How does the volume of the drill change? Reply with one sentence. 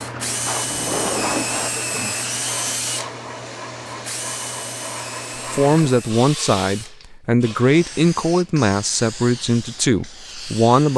The loudness of the drill goes down.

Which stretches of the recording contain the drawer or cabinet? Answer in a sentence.
You can hear the drawer or cabinet from 0.7 to 1.8 s.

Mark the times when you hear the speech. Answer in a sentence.
You can hear the speech from 5.5 to 10.9 s.